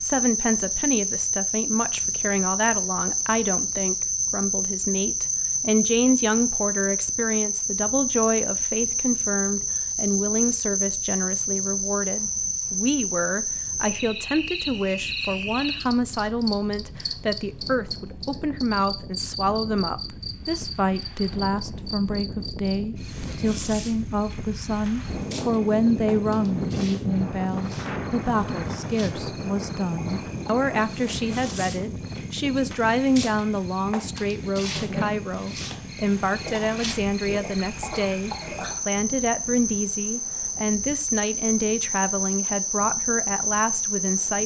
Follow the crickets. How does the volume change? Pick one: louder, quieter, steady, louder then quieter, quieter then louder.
quieter then louder.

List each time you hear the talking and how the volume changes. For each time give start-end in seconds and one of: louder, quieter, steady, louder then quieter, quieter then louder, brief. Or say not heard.
0.0-44.4 steady.